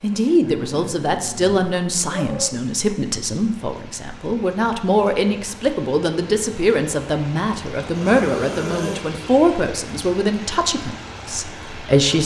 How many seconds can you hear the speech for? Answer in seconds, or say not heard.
12 s.